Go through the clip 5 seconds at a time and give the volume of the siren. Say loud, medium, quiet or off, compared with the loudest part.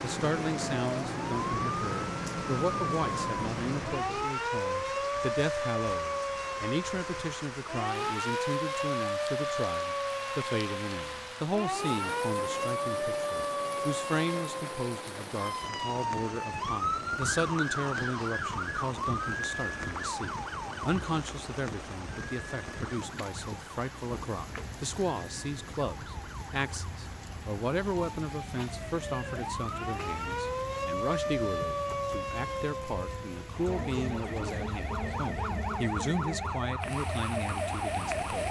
loud, loud, loud, loud, medium, medium, loud, loud.